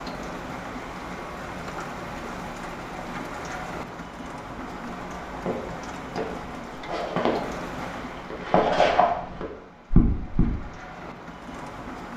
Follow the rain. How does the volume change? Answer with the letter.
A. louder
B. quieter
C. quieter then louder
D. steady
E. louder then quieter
B.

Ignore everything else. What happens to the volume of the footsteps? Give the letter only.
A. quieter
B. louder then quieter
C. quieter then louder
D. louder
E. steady
C.